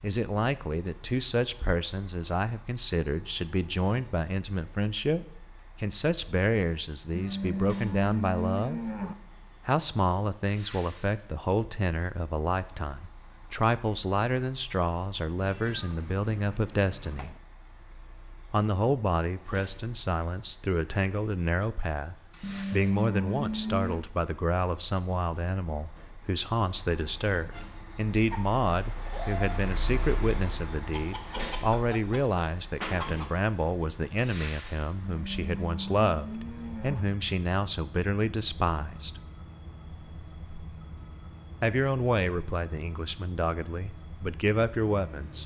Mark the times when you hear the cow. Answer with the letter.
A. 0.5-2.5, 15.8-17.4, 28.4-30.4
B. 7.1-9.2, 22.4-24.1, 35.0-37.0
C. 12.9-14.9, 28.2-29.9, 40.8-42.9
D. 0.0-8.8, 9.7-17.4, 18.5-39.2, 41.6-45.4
B.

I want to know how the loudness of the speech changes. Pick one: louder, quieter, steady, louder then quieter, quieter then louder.
steady.